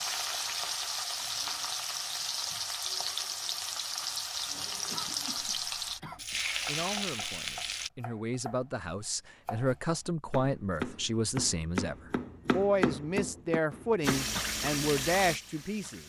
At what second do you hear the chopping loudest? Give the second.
13 s.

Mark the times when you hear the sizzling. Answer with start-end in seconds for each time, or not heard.
0.0-7.9, 14.0-16.0.